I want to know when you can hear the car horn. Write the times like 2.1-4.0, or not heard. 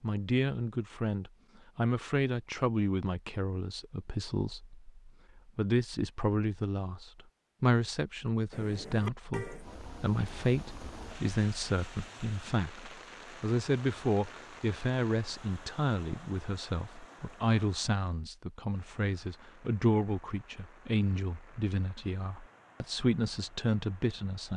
8.5-9.7.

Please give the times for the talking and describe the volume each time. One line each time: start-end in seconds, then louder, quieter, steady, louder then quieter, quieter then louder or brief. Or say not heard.
0.0-24.5 steady.